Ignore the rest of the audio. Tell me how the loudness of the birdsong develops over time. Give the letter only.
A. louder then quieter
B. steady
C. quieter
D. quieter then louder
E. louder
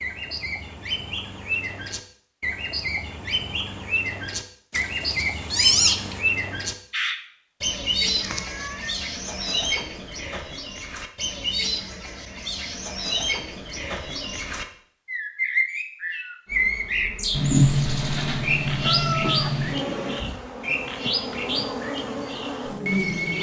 B.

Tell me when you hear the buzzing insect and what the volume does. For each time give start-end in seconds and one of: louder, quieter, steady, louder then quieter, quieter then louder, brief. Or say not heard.
16.4-23.3 louder.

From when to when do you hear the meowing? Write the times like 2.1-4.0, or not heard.
4.7-6.2, 8.2-8.9, 17.3-19.8.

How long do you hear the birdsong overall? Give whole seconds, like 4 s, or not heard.
23 s.